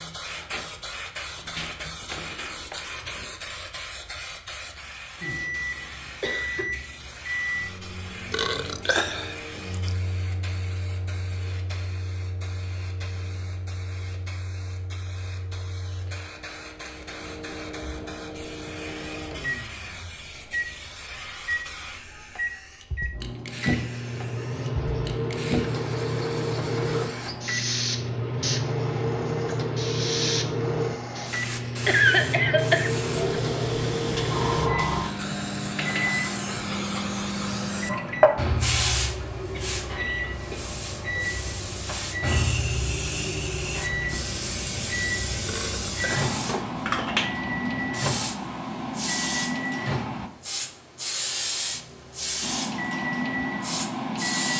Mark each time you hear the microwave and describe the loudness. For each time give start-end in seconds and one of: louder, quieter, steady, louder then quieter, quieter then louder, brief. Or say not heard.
5.2-50.3 louder
52.4-54.5 brief.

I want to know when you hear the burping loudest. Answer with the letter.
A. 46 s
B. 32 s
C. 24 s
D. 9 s
D.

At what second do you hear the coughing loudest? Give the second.
32 s.